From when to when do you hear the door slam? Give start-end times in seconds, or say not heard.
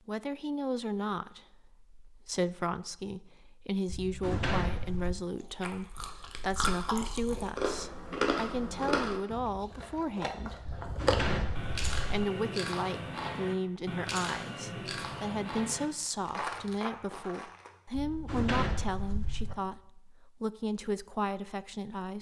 3.9-5.2, 10.7-12.2, 17.9-19.6.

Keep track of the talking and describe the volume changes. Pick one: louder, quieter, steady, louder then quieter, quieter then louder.
steady.